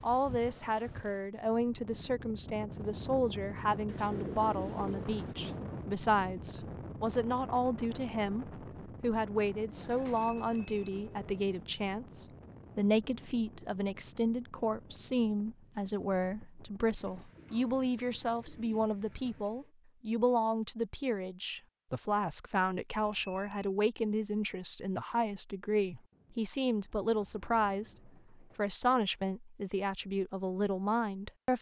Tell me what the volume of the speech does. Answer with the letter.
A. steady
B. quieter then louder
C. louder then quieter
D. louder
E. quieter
A.